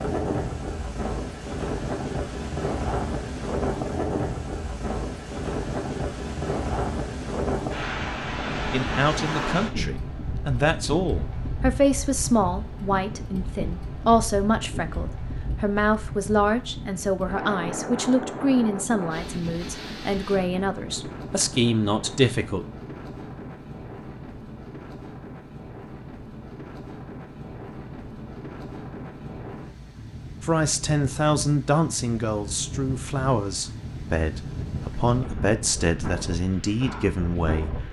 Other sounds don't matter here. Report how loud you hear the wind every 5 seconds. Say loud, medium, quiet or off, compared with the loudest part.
loud, loud, medium, medium, medium, medium, medium, medium.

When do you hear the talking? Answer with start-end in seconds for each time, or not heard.
8.7-22.6, 30.4-37.7.